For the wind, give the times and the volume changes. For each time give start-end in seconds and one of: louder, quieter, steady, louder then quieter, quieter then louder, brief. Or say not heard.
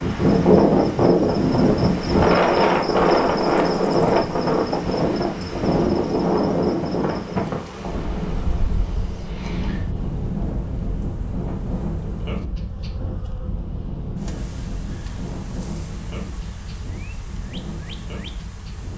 0.0-18.9 quieter.